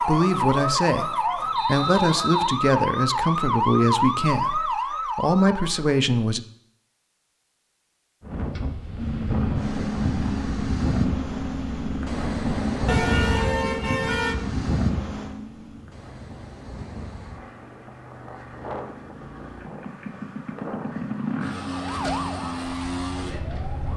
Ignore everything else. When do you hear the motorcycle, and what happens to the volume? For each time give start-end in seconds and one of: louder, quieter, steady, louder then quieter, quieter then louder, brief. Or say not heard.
8.9-23.9 quieter then louder.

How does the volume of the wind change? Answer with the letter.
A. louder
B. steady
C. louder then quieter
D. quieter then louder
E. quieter
E.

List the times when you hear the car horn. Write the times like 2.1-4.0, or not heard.
12.8-14.3.